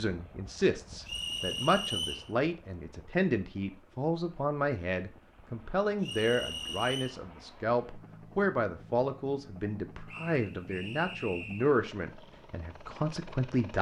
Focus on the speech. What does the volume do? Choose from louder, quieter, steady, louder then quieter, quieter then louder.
steady.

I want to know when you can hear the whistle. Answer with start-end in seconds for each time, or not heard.
1.1-2.3, 6.0-7.2, 10.1-11.7.